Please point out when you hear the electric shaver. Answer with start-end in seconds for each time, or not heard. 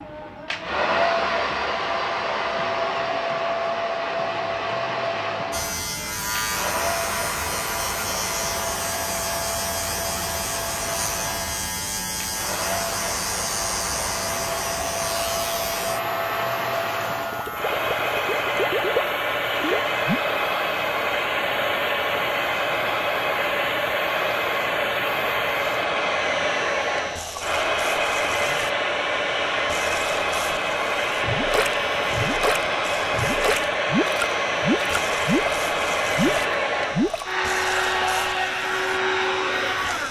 5.5-40.0.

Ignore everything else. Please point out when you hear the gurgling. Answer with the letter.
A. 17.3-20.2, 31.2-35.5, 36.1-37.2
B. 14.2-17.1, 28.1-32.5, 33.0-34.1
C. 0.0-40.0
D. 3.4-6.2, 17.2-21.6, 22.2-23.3
A.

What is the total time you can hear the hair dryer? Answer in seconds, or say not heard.
40 s.